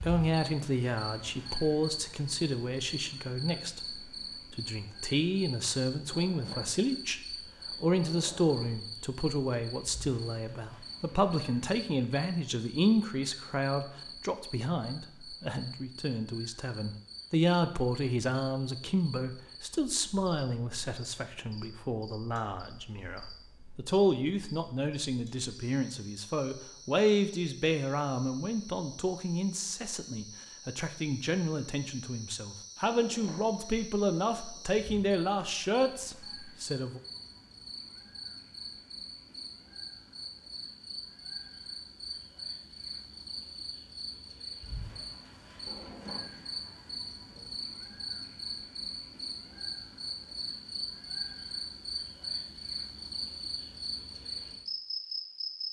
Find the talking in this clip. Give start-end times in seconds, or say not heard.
0.0-7.2, 7.8-37.0.